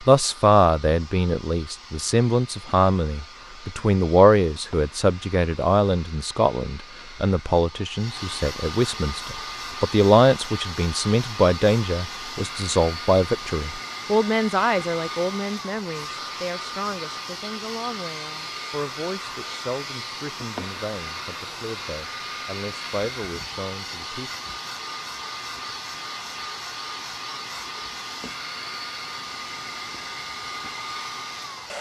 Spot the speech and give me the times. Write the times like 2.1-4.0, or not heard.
0.0-24.3.